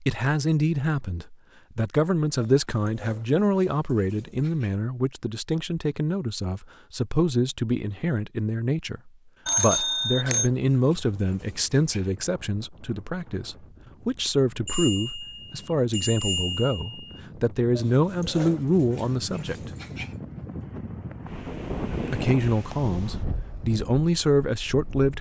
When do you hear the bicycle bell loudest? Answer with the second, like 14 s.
10 s.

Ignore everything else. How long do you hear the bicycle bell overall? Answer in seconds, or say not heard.
3 s.